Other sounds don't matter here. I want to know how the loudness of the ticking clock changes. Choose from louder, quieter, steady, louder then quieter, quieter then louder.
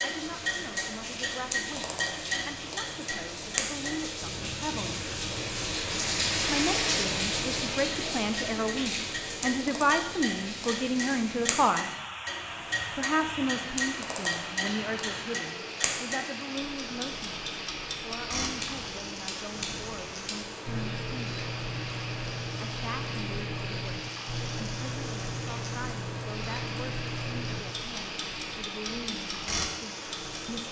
steady.